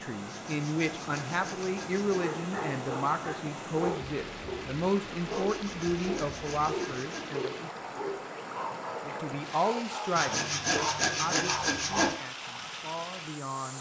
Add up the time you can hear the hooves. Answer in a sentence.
You can't hear the hooves here.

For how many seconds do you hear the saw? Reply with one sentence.
The saw can be heard for 6 seconds in total.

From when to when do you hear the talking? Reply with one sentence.
You can hear the talking from 0.0 to 7.5 s and from 9.1 to 13.7 s.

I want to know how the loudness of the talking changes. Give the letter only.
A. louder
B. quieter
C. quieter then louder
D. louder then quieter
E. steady
B.